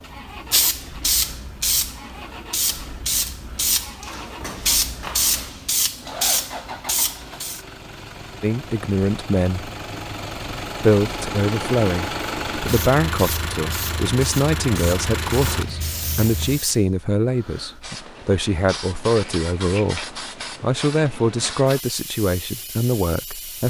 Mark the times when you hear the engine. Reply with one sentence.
The engine can be heard from 0.0 to 16.6 s.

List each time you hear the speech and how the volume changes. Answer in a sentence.
You can hear the speech briefly from 8.4 to 9.7 s; and from 10.8 to 23.6 s, at a steady volume.